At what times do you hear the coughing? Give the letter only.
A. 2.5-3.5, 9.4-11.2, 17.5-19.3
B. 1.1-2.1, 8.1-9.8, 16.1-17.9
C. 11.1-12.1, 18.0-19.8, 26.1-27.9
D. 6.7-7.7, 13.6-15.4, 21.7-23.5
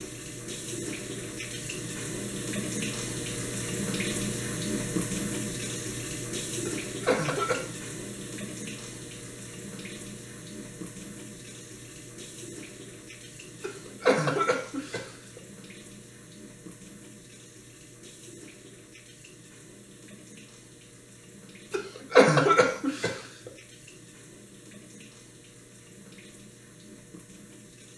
D.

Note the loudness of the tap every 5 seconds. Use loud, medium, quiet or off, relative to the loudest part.
loud, loud, medium, quiet, quiet, quiet.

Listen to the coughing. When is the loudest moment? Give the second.
22 s.